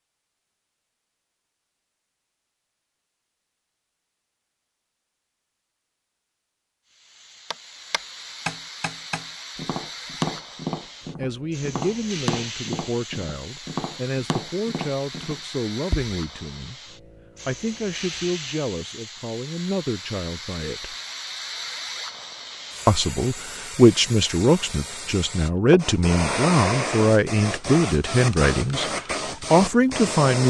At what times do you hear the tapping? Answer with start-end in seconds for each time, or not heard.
7.5-16.1.